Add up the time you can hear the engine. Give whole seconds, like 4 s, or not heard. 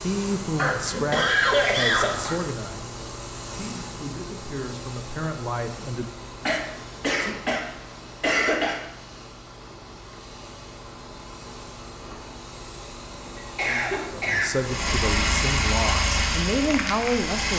3 s.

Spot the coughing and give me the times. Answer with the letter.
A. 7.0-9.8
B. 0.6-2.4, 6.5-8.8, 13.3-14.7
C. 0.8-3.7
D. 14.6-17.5
B.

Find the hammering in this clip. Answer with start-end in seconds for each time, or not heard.
not heard.